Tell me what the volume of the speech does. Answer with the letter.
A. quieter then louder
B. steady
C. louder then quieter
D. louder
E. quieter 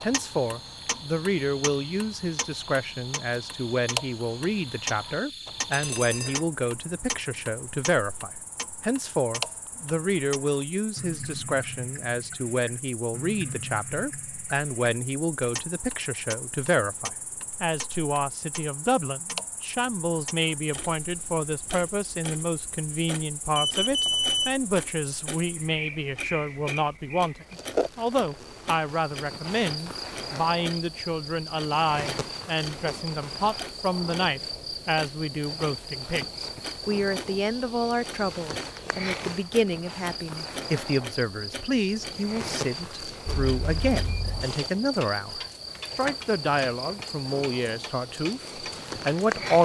B.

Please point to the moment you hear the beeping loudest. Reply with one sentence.
The volume of the beeping peaks at 24 seconds.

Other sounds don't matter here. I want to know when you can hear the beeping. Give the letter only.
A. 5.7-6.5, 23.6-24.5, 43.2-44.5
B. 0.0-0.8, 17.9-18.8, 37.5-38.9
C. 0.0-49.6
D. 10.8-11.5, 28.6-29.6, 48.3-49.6
A.